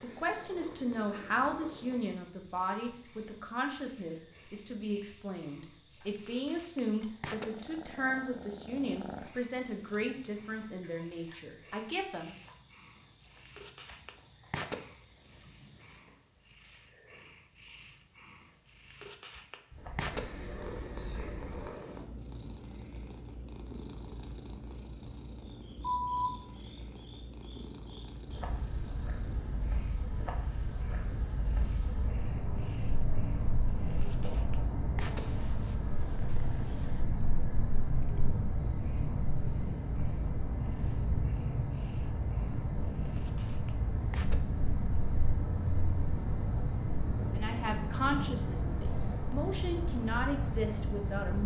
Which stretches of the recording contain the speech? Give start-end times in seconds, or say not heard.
0.0-12.3, 47.4-51.4.